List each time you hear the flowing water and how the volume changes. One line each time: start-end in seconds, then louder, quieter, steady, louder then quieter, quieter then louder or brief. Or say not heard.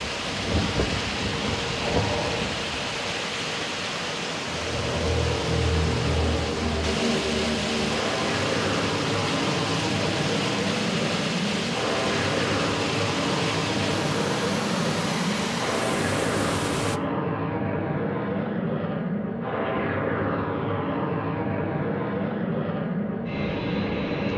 0.0-17.0 steady.